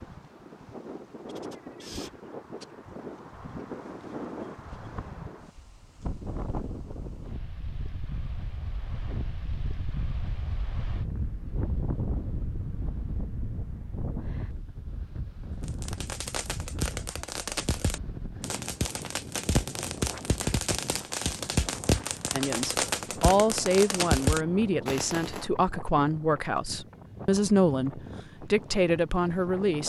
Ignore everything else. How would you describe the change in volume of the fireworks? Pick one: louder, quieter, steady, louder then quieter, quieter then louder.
louder.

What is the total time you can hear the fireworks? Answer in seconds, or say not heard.
10 s.